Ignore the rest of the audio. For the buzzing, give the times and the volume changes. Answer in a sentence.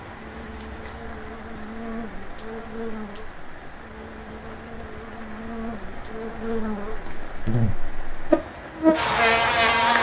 You can hear the buzzing from 0.1 to 9.9 s, getting louder.